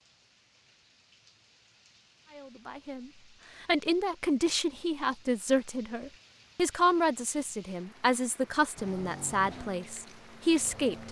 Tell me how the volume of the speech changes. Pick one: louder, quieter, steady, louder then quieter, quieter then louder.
steady.